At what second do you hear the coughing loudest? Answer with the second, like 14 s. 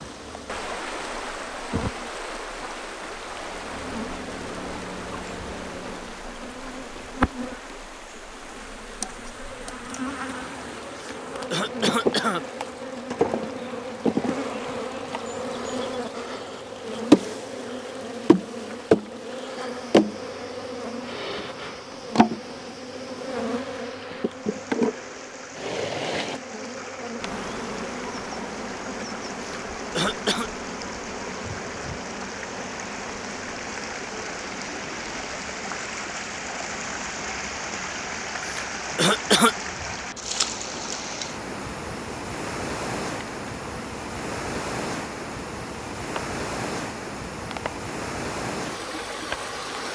39 s.